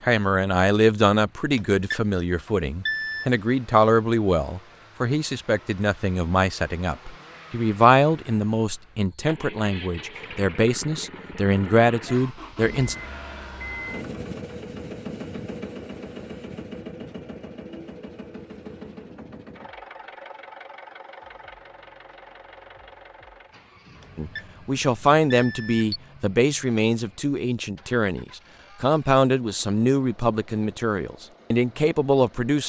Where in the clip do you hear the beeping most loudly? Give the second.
3 s.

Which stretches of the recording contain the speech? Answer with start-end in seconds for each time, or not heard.
0.0-12.9, 24.1-32.6.